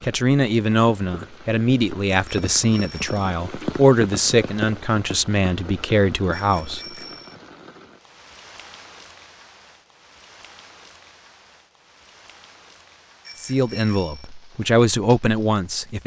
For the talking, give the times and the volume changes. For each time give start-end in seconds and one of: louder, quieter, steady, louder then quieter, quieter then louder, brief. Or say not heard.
0.0-6.8 steady
13.4-16.0 brief.